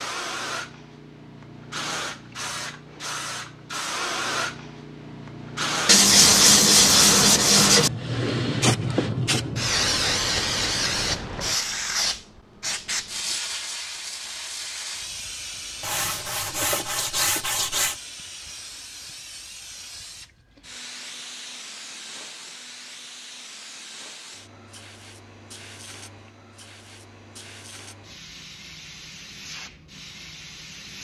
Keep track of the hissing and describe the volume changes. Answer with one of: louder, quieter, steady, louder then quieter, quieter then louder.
louder then quieter.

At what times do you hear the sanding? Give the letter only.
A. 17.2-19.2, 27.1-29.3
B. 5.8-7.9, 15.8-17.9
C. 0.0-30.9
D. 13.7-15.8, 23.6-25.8
B.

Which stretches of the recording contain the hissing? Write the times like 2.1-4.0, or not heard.
0.0-30.9.